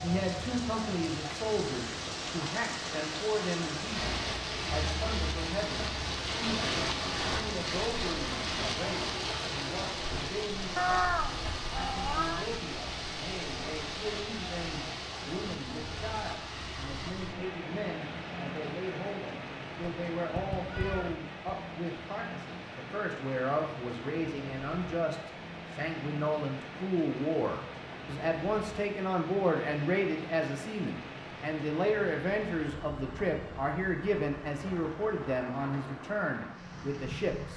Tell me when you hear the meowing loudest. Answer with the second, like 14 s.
11 s.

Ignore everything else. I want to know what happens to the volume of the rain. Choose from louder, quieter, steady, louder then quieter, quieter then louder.
quieter.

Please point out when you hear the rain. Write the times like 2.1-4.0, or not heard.
0.0-37.5.